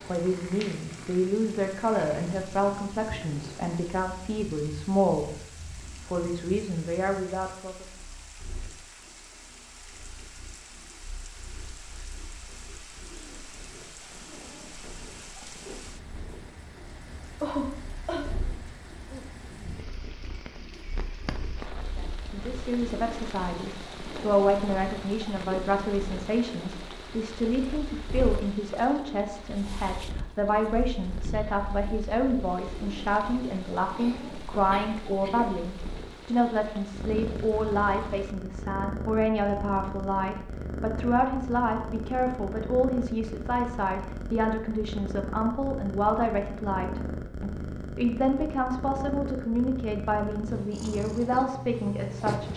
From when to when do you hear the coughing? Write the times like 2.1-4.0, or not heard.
17.4-18.3, 33.9-35.5.